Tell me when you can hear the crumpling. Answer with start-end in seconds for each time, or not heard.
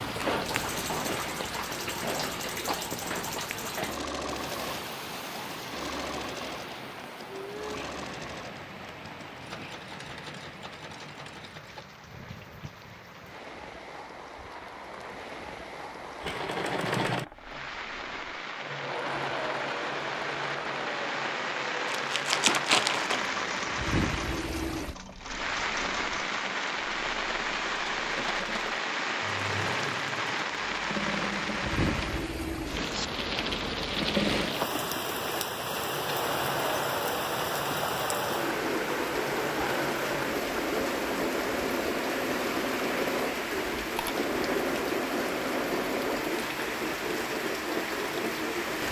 21.9-23.3.